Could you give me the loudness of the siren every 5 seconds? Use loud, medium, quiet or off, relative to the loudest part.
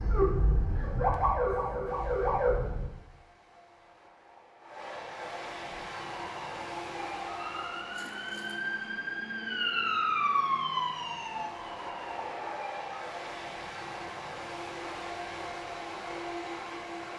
loud, medium, loud, off.